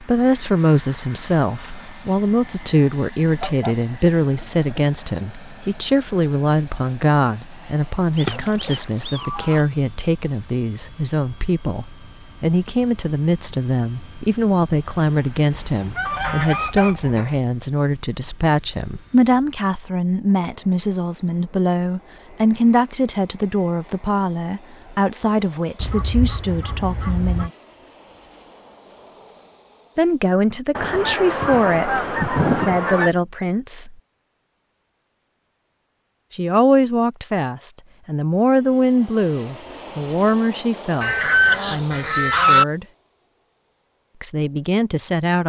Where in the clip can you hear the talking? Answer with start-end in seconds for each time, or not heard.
0.0-27.5, 29.9-34.0, 36.3-42.9, 44.2-45.4.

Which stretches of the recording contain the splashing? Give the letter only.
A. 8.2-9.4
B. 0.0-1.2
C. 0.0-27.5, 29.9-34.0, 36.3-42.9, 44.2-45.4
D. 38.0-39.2
A.